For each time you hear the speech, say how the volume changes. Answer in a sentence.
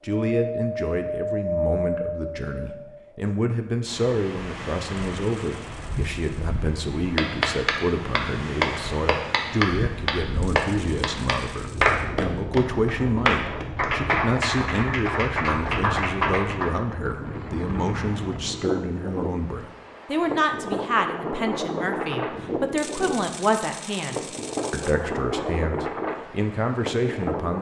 You can hear the speech from 0.0 to 27.5 s, at a steady volume.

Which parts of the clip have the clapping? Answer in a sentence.
You can hear the clapping from 7.2 to 16.7 s.